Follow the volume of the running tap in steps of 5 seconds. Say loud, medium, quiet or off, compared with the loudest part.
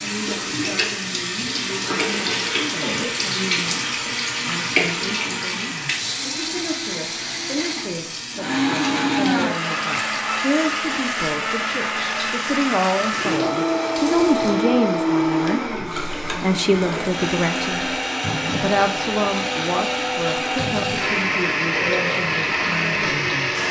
loud, medium, medium, medium, medium.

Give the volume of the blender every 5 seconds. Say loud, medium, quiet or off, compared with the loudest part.
medium, loud, loud, loud, loud.